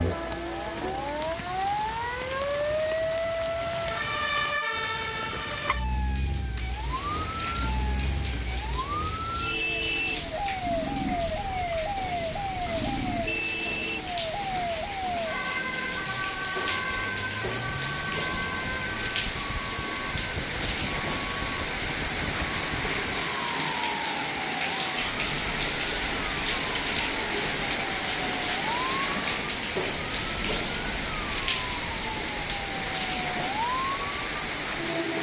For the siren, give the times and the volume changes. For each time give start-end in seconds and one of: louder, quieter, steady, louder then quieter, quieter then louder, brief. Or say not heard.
0.0-35.1 quieter.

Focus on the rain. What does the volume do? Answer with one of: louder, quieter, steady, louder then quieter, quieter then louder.
louder.